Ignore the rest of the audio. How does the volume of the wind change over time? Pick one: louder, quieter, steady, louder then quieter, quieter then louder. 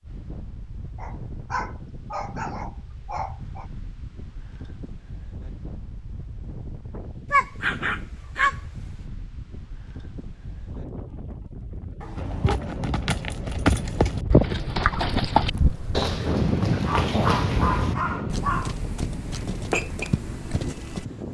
louder.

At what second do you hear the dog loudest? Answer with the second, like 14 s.
8 s.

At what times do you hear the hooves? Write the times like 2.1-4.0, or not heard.
12.2-21.1.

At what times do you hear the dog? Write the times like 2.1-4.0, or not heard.
0.9-3.6, 7.3-8.6, 12.0-12.6, 16.7-18.8.